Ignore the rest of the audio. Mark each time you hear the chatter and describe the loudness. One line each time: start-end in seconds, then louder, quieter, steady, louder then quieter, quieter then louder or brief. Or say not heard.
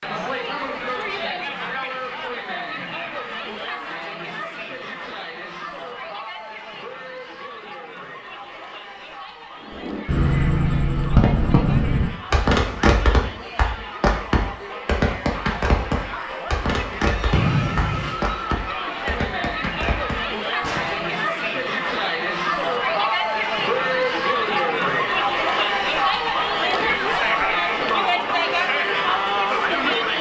0.0-30.1 quieter then louder.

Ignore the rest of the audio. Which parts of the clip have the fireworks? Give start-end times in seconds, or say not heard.
9.7-21.1.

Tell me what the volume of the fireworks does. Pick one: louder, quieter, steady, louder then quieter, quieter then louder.
quieter.